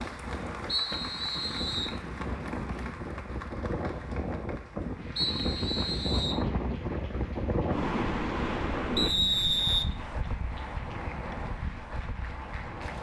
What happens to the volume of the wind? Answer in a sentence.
The volume of the wind goes up, then down.